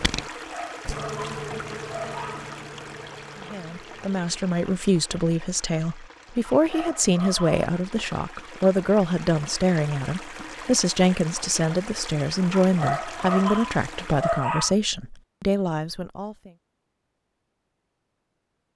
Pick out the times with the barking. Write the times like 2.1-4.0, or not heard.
0.3-2.5, 6.5-7.7, 12.5-14.8.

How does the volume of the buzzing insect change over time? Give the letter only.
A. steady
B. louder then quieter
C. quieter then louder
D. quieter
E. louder
D.